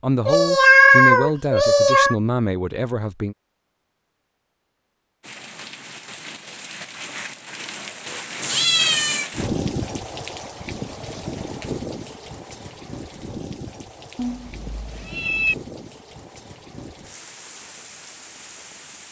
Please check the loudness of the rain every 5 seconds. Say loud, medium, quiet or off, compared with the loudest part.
off, loud, loud, medium.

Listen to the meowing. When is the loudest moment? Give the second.
1 s.